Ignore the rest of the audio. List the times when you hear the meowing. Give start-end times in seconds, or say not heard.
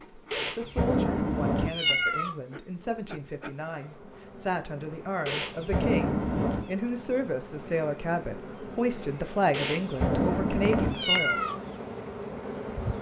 0.3-2.3, 5.2-6.7, 9.5-11.6.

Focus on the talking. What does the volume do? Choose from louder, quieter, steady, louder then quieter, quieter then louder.
louder.